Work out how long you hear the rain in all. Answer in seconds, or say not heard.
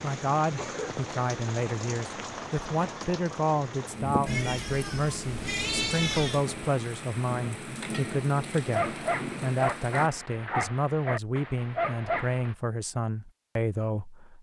10 s.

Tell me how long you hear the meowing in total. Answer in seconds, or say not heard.
2 s.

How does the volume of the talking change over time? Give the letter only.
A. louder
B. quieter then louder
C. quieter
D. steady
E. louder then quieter
D.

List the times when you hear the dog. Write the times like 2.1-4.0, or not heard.
8.7-12.6.